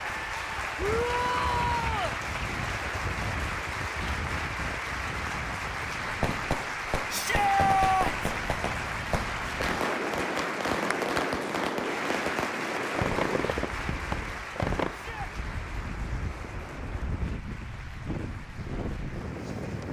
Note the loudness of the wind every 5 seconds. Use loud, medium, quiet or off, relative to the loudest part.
loud, medium, loud, loud.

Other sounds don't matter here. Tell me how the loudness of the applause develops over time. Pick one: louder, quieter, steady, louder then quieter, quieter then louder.
quieter.